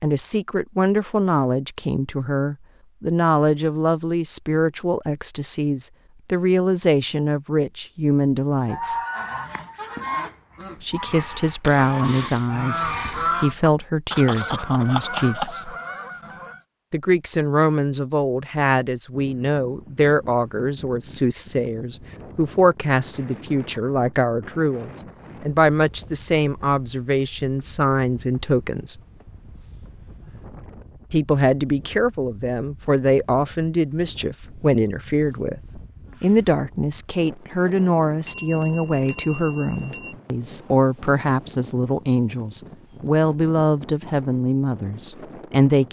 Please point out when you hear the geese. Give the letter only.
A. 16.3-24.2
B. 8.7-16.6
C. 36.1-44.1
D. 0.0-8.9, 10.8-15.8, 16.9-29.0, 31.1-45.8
B.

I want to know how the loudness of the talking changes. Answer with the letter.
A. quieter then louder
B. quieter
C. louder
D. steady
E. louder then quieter
D.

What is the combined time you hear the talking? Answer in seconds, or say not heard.
41 s.